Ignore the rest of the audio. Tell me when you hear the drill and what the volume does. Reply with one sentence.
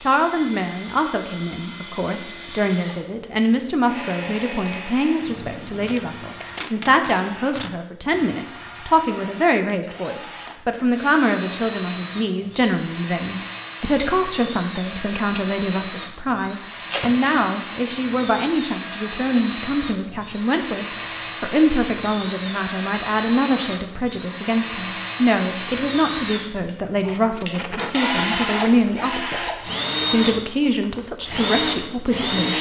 The drill can be heard from 0.0 to 32.5 s, getting louder.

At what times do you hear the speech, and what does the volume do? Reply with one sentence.
The speech can be heard from 0.0 to 32.5 s, at a steady volume.